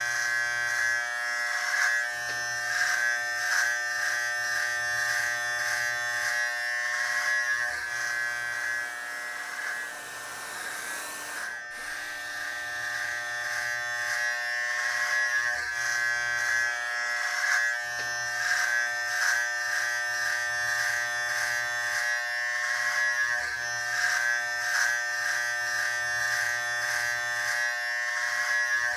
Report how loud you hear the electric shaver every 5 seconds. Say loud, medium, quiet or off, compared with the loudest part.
loud, loud, medium, loud, loud, loud.